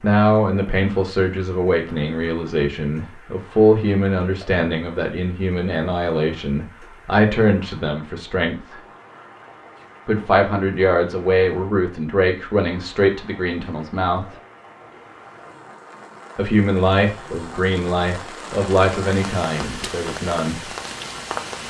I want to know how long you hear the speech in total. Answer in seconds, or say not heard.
17 s.